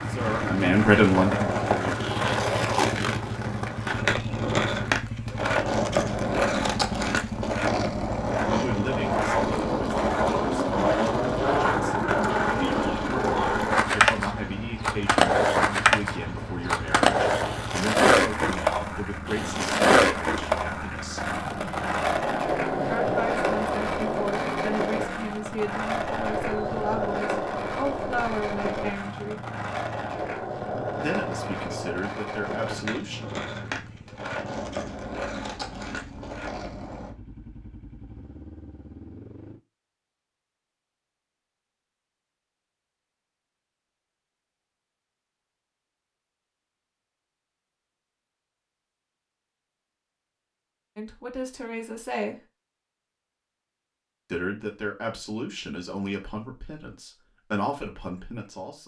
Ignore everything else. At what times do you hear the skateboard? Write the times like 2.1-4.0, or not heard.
0.0-37.1.